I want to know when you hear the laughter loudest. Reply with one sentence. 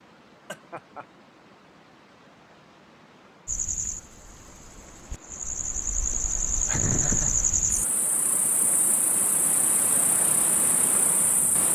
The loudest moment of the laughter is at 7 seconds.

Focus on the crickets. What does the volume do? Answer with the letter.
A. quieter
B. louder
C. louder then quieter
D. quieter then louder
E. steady
C.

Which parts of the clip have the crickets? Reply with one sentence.
The crickets can be heard from 3.5 to 11.6 s.